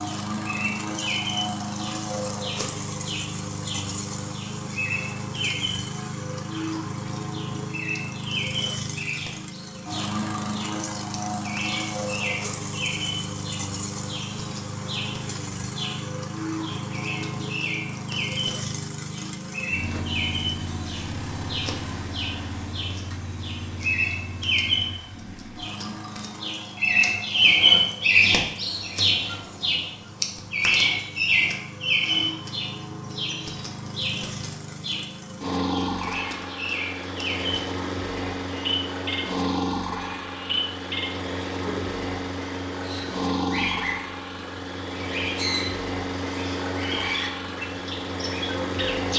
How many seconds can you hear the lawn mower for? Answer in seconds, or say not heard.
49 s.